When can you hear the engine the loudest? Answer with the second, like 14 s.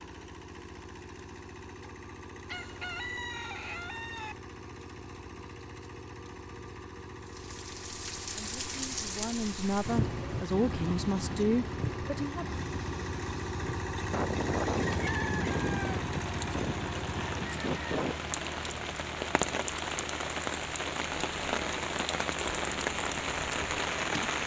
15 s.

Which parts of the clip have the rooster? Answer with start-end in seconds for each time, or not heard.
2.5-4.3, 14.1-18.1.